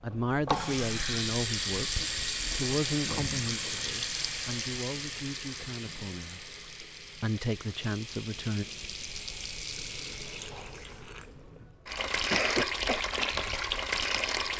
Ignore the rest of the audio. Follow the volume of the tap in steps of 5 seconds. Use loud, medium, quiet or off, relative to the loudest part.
loud, medium, loud.